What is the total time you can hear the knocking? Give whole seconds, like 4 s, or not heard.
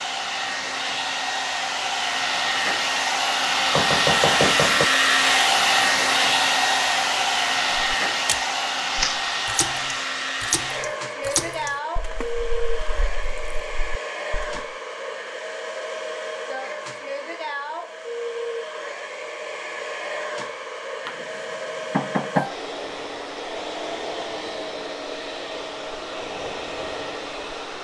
2 s.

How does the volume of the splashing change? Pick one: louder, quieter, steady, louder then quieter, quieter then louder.
quieter.